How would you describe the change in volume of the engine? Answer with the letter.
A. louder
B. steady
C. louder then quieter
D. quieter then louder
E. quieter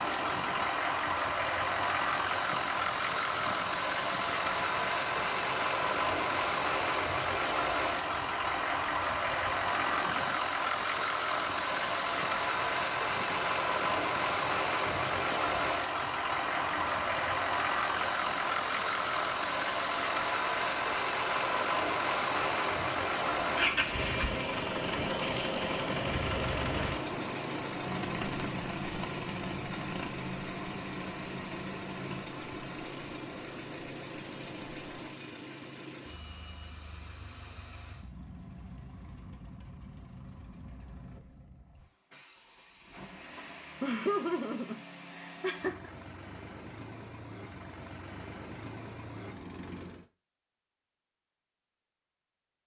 E.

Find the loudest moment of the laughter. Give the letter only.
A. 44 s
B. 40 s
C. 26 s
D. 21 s
A.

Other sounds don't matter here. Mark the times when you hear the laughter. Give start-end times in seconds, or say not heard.
43.4-45.9.